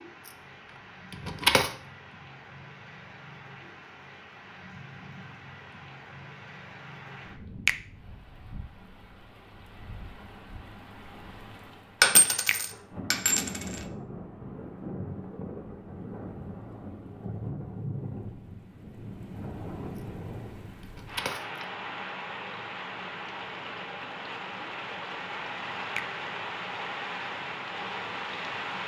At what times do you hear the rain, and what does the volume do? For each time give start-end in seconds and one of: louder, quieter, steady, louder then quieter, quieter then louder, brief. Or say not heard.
0.0-28.8 louder.